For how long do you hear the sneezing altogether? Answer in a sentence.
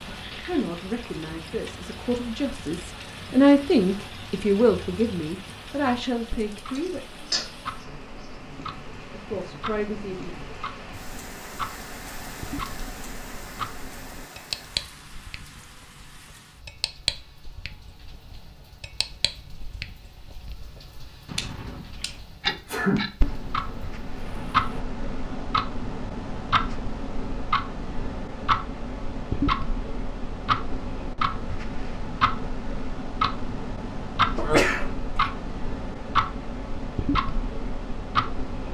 You can hear the sneezing for 2 seconds altogether.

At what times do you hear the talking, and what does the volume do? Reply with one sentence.
You can hear the talking from 0.0 to 7.0 s, getting louder then quieter; and briefly from 9.1 to 10.3 s.